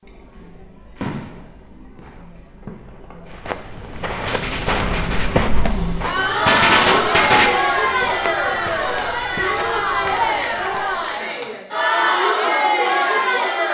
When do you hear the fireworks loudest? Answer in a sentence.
The volume of the fireworks peaks at 7 seconds.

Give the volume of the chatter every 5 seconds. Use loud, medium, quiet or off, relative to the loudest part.
quiet, loud, loud.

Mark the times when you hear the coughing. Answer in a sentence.
The coughing can't be heard in this clip.